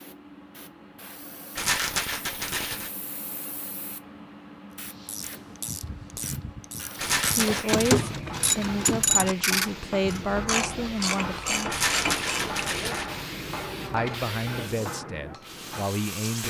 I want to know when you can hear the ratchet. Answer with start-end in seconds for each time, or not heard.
4.8-12.6.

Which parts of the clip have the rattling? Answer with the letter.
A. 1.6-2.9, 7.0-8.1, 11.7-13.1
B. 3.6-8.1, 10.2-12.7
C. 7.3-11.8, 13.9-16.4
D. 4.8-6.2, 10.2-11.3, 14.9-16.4
A.